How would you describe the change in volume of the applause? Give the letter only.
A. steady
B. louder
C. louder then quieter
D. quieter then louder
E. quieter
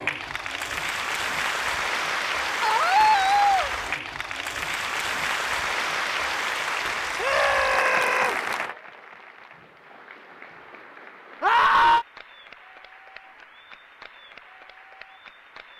E.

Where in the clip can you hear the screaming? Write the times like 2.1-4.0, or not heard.
2.6-3.7, 7.2-8.3, 11.4-12.1.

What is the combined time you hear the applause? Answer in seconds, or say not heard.
16 s.